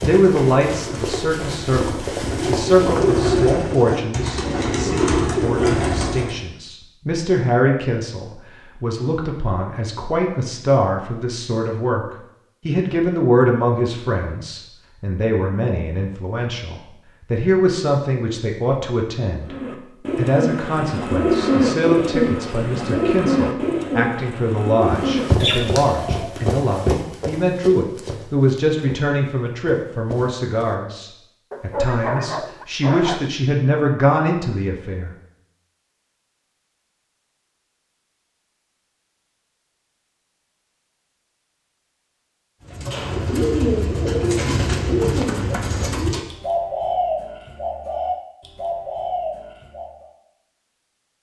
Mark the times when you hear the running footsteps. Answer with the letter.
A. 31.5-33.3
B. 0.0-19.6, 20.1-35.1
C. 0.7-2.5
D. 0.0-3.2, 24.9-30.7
D.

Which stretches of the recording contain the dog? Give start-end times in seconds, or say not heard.
31.5-33.3.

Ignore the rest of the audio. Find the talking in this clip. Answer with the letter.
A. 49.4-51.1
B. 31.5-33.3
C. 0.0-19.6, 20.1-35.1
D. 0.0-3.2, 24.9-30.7
C.